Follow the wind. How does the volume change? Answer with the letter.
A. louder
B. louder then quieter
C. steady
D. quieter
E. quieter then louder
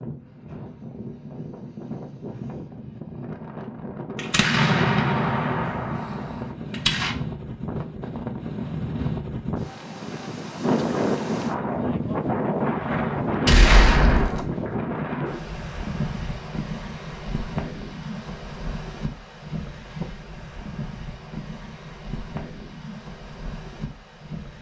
B.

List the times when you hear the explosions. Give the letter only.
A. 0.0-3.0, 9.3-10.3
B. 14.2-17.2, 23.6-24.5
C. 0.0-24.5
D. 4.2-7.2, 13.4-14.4
D.